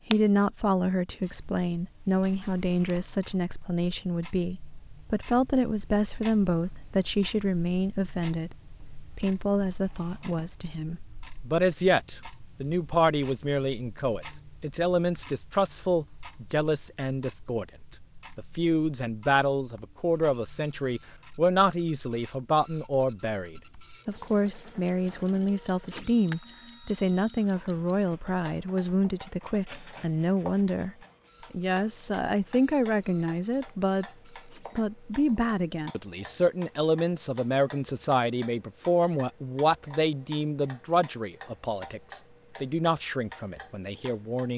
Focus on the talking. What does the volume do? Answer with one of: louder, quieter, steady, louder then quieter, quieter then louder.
steady.